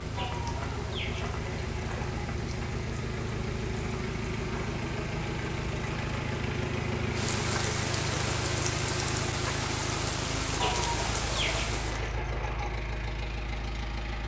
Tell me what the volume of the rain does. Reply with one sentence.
The loudness of the rain goes up.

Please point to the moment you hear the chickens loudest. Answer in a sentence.
The volume of the chickens peaks at 11 seconds.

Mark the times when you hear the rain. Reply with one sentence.
You can hear the rain from 0.0 to 12.2 s.